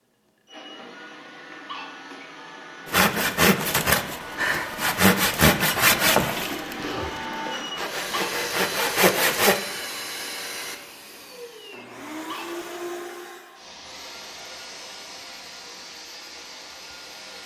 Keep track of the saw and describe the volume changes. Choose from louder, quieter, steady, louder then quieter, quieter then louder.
quieter then louder.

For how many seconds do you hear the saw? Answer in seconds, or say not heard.
7 s.